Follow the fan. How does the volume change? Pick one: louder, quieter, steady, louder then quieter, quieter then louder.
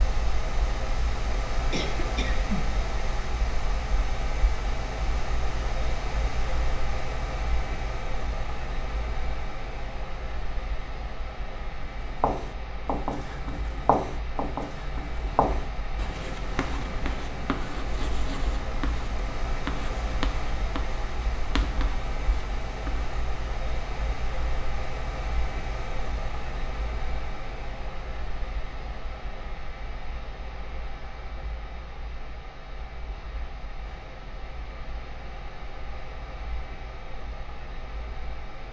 quieter.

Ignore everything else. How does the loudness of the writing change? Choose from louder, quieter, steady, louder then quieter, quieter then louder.
quieter.